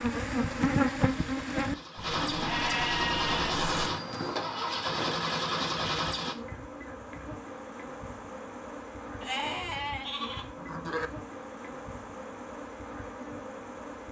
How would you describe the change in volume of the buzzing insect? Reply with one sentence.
The volume of the buzzing insect goes down.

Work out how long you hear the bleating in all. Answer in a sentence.
The bleating can be heard for 4 seconds in total.